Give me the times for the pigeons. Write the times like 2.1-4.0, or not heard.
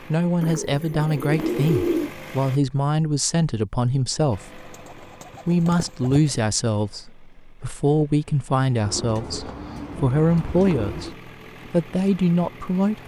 0.4-2.1, 4.7-6.4, 8.8-11.2.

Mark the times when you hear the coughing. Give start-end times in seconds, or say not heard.
not heard.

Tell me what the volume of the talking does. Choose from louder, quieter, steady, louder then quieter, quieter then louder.
steady.